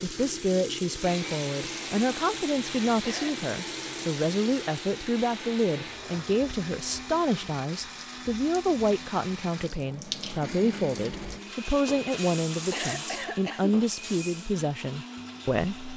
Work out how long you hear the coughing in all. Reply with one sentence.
You can hear the coughing for 2 seconds altogether.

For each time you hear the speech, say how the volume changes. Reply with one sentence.
The speech can be heard from 0.0 to 15.9 s, at a steady volume.